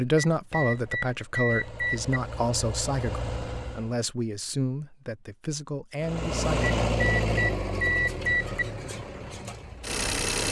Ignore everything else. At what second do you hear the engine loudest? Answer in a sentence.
The loudest moment of the engine is at 7 seconds.